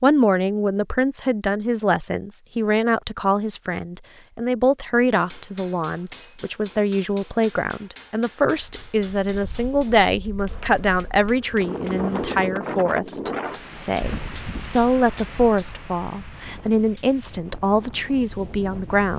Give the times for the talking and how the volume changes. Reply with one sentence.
The talking can be heard from 0.0 to 19.1 s, at a steady volume.